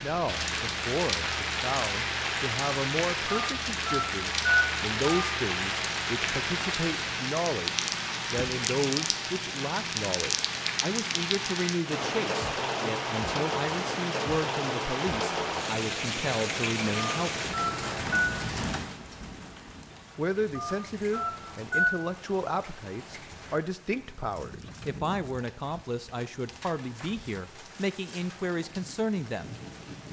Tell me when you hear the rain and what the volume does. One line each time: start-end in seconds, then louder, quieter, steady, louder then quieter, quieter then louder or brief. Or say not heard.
0.0-30.0 quieter.